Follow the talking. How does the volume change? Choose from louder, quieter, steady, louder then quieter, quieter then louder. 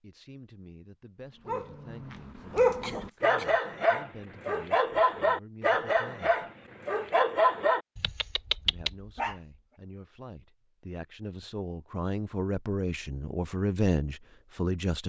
louder.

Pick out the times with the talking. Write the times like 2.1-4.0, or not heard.
0.0-6.5, 8.7-15.0.